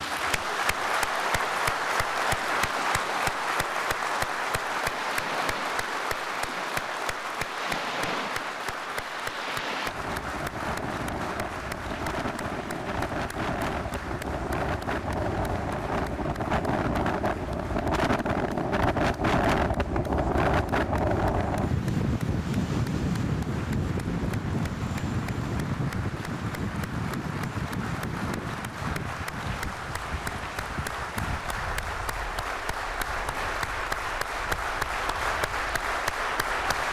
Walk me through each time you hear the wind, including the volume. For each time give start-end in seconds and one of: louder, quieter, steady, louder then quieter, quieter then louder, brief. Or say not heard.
0.0-36.8 louder then quieter.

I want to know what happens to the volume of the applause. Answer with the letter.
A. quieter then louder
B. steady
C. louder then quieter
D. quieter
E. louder
A.